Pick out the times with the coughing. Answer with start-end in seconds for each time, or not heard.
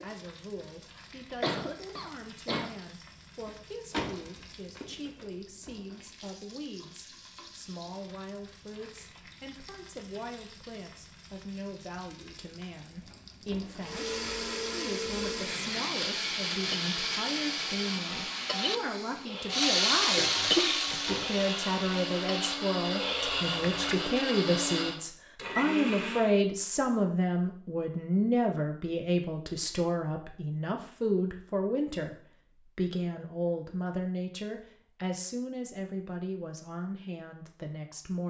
1.4-2.7, 20.1-21.1.